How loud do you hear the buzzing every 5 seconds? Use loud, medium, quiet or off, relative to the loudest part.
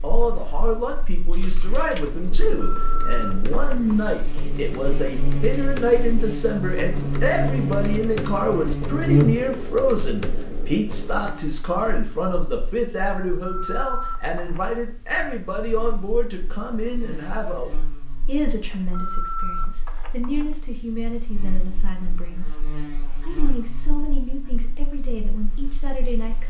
quiet, loud, quiet, quiet, quiet, quiet.